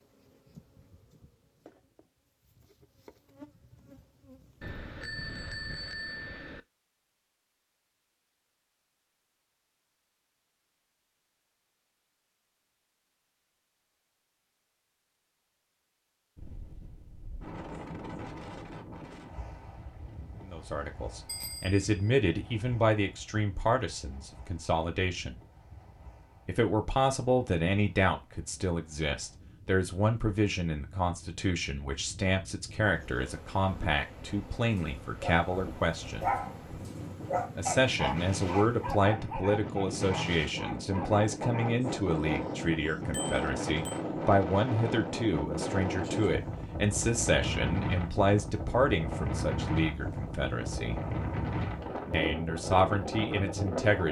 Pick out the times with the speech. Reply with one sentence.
The speech can be heard from 20.4 to 25.4 s, from 26.4 to 36.2 s, from 37.5 to 51.0 s and from 52.1 to 54.0 s.